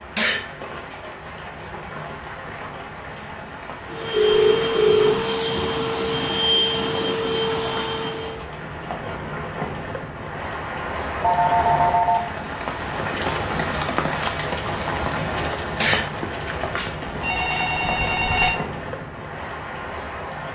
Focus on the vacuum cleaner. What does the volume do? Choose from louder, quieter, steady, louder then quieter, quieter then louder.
steady.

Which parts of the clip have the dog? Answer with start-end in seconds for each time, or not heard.
not heard.